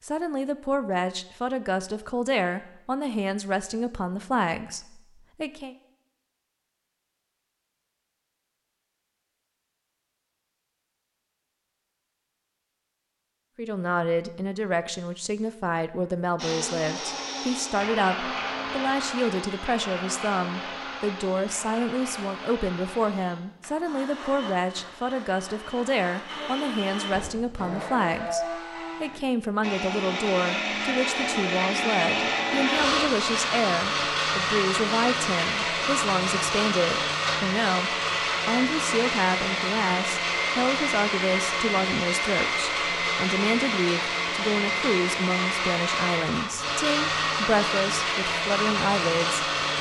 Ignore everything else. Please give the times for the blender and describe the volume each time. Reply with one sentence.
The blender can be heard from 16.4 to 49.7 s, getting louder.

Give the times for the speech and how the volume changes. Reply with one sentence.
The speech can be heard from 0.0 to 5.8 s, at a steady volume; and from 13.6 to 49.5 s, at a steady volume.